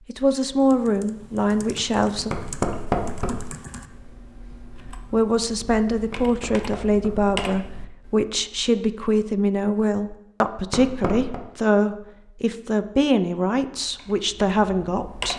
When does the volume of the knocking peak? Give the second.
3 s.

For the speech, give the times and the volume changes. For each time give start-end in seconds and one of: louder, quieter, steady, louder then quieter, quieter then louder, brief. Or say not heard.
0.1-2.4 brief
5.1-15.3 steady.